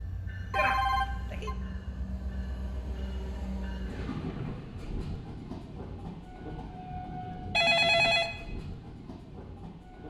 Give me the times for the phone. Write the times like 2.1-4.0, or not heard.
0.5-1.6, 7.5-8.3.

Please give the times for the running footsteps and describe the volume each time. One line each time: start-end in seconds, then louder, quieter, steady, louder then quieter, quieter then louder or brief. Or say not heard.
not heard.